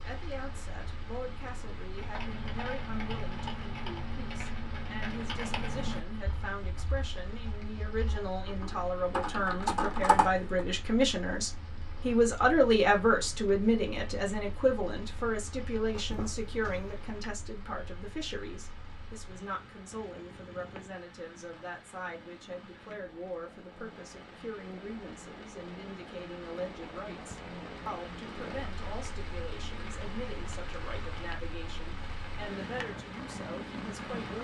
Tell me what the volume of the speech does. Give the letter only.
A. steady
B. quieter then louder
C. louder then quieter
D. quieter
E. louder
C.